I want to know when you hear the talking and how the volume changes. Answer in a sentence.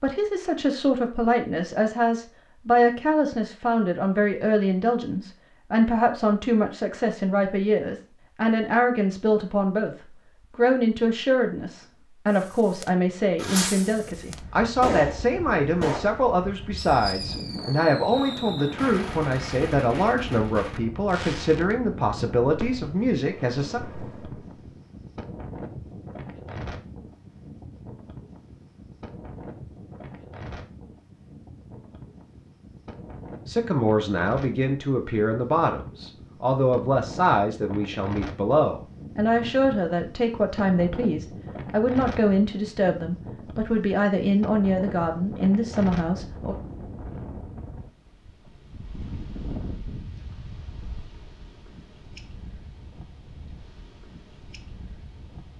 The talking can be heard from 0.0 to 23.8 s, at a steady volume; and from 33.5 to 46.5 s, at a steady volume.